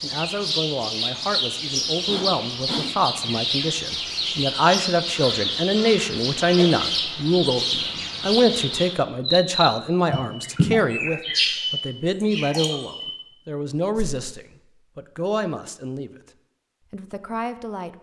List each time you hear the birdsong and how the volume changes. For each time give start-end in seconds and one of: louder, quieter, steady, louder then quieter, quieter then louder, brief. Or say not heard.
0.0-13.2 steady.